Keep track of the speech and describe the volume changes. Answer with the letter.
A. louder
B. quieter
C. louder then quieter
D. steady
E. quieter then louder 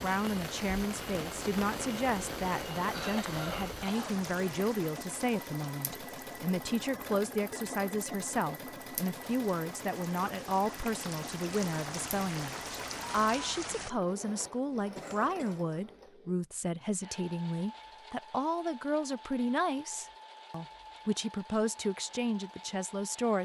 D.